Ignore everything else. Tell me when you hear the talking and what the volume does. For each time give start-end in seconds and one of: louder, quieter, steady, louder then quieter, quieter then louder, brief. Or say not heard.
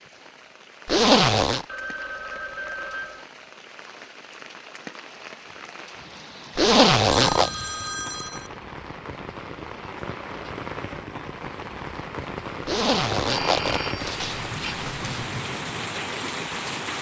not heard.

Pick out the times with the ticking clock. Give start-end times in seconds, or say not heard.
not heard.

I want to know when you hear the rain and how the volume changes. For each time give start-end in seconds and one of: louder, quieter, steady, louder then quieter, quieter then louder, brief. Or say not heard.
0.0-16.9 louder.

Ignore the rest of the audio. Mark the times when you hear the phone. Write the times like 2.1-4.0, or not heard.
1.6-3.2, 7.1-8.6, 13.2-14.8.